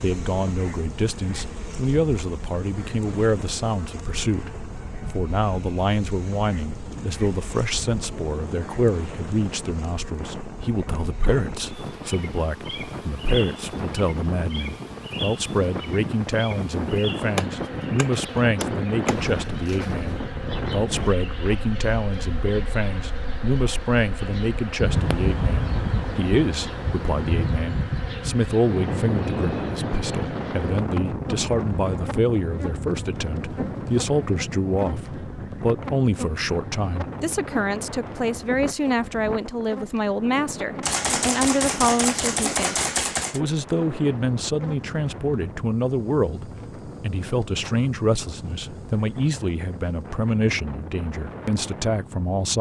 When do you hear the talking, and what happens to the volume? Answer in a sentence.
The talking can be heard from 0.0 to 52.5 s, at a steady volume.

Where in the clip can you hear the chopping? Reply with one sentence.
You can hear the chopping from 17.4 to 19.2 s and from 40.8 to 43.4 s.